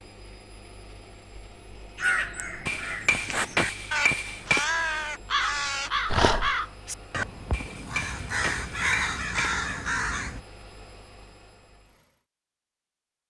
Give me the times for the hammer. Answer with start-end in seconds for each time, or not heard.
2.6-4.7, 7.5-9.6.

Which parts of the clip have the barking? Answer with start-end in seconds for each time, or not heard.
6.0-6.5.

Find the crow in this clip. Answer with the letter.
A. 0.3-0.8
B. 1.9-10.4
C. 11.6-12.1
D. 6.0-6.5
B.